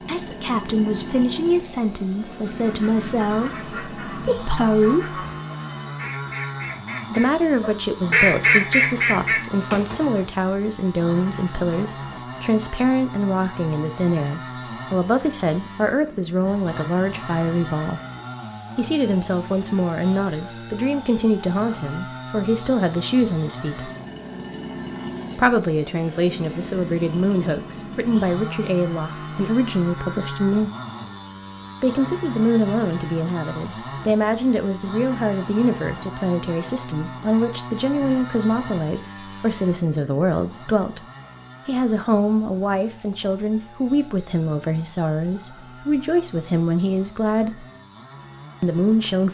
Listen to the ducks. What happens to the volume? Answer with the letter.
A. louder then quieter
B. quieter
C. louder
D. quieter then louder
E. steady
C.